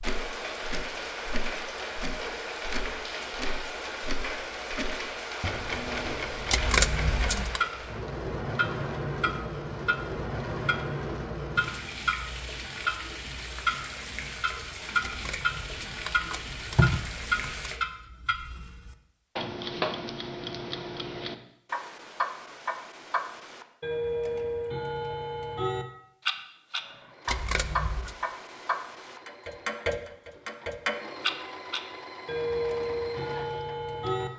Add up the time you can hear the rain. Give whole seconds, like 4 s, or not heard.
18 s.